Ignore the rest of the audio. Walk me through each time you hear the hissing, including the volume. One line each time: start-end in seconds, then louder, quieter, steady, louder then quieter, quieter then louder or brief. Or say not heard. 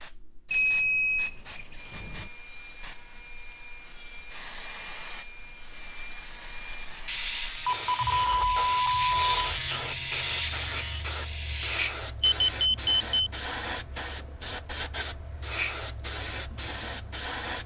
0.0-17.6 louder.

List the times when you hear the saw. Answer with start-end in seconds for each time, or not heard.
1.8-11.9.